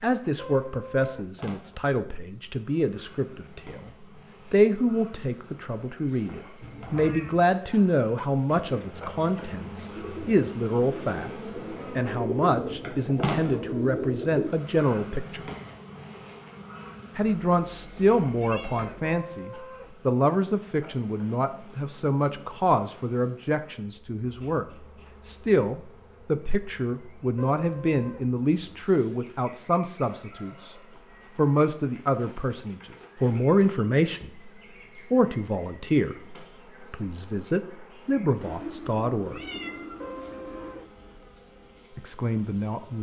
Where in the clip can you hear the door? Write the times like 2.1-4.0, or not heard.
not heard.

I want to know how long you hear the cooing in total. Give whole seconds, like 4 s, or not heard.
6 s.